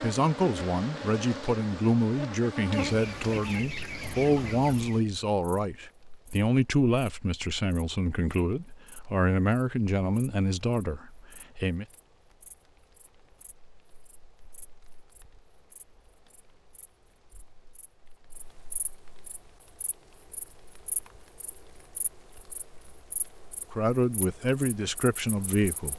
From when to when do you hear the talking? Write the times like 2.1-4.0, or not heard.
0.0-11.8, 23.7-25.9.